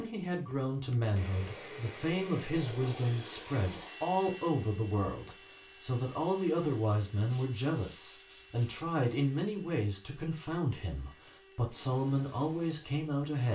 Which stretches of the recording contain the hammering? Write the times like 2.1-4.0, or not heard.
not heard.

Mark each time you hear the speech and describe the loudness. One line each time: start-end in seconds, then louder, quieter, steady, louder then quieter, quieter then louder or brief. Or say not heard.
0.0-13.5 steady.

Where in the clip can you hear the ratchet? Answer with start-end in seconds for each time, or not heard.
not heard.